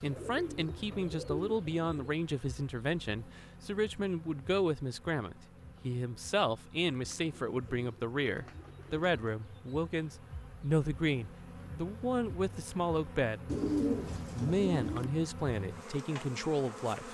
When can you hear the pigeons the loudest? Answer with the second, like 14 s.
14 s.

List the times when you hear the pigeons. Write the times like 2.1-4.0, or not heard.
0.1-2.0, 7.1-9.3, 13.4-15.1.